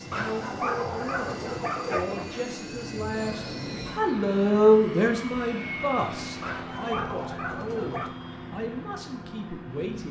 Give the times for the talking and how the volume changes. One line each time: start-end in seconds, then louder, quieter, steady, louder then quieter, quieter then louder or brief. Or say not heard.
0.0-10.0 louder then quieter.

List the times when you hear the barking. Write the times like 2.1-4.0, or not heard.
0.1-2.2, 6.4-8.2.